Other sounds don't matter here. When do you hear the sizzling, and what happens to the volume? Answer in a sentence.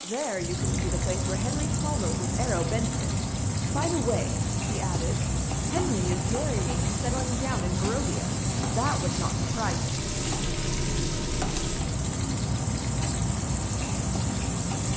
You can hear the sizzling from 0.0 to 14.9 s, at a steady volume.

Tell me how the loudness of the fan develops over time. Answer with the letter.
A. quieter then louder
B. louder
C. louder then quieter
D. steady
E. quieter
D.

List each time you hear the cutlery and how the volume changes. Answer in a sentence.
The cutlery can't be heard in this clip.